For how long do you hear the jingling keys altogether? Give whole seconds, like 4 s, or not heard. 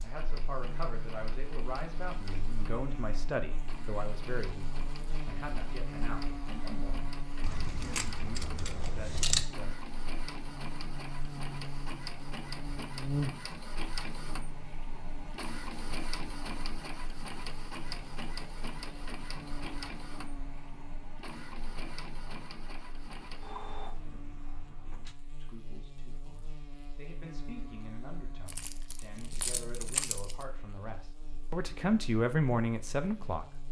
4 s.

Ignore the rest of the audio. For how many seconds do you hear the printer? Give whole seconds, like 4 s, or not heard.
25 s.